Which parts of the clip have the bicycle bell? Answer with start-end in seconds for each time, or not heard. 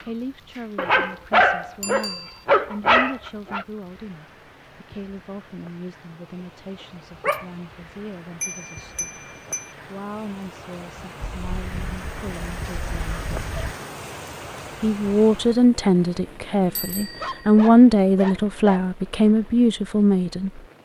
1.8-2.5, 8.4-9.8, 16.8-17.6.